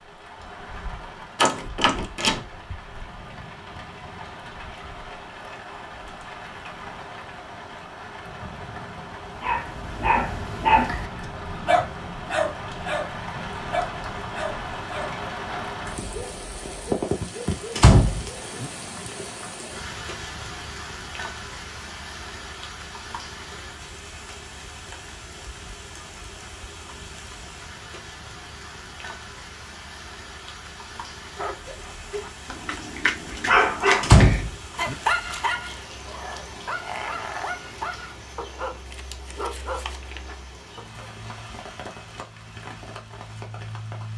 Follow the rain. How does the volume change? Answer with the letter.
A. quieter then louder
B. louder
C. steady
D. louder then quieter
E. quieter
D.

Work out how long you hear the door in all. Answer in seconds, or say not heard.
3 s.